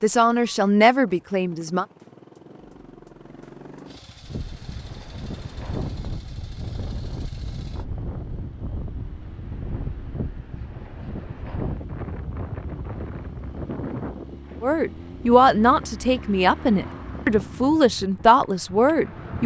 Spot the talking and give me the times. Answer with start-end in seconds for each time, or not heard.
0.0-1.9, 14.6-19.4.